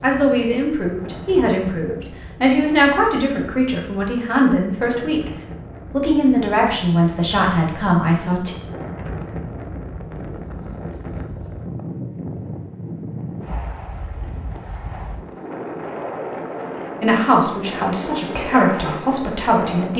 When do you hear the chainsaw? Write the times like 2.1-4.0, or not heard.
not heard.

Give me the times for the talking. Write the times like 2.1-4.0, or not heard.
0.0-5.3, 5.9-8.6, 17.0-19.9.